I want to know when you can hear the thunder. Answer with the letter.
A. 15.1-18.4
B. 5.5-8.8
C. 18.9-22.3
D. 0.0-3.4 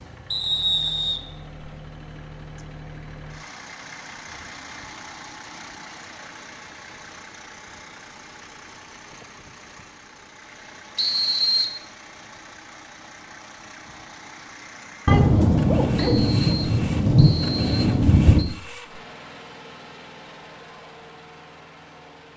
A.